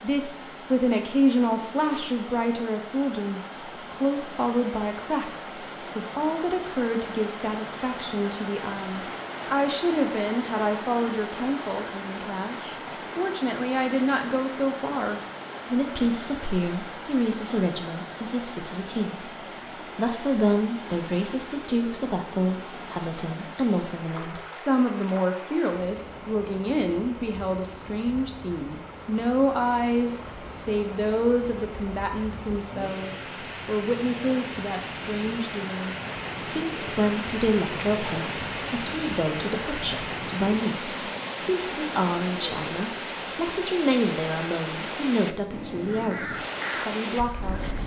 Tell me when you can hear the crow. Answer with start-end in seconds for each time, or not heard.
45.9-47.8.